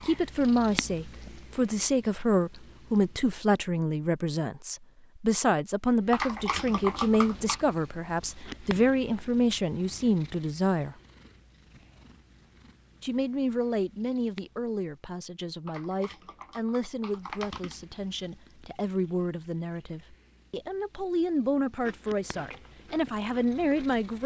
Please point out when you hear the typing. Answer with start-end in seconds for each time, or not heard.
6.1-7.7, 15.7-17.9.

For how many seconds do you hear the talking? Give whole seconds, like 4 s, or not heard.
22 s.